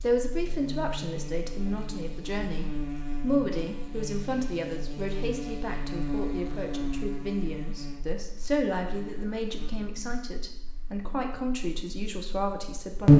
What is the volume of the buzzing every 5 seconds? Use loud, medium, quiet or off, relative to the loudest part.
quiet, quiet, loud.